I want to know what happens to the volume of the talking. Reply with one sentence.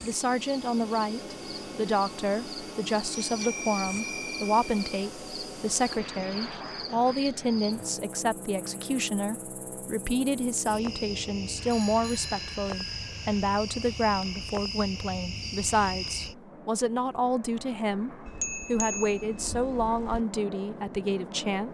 The volume of the talking stays about the same.